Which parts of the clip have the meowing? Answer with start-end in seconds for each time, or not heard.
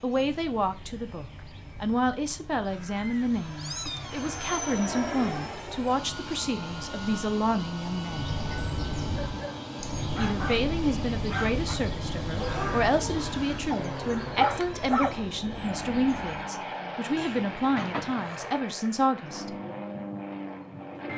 3.0-4.4, 17.1-18.4.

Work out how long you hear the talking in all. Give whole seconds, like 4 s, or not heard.
18 s.